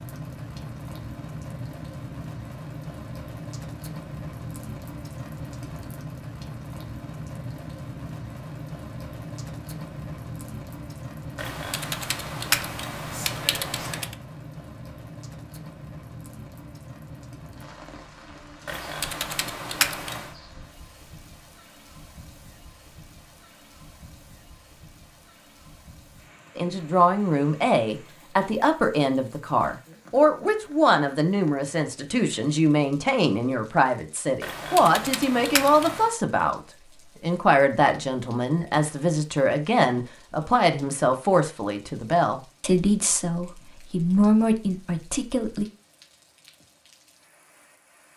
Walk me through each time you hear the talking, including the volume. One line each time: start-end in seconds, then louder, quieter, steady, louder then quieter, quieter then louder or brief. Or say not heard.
26.6-45.6 steady.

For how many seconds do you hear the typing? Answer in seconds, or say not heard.
6 s.